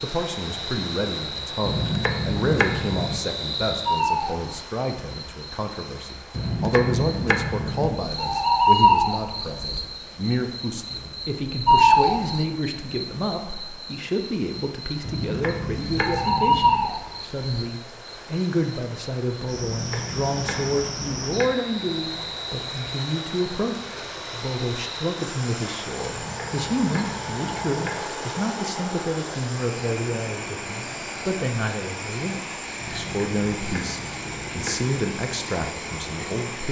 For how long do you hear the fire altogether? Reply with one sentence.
The fire can't be heard in this clip.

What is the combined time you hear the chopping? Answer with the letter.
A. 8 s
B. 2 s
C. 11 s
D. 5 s
C.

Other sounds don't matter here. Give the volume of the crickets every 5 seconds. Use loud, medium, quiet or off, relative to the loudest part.
medium, loud, loud, loud, quiet, quiet, quiet, quiet.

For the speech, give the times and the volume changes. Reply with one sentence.
The speech can be heard from 0.0 to 36.6 s, at a steady volume.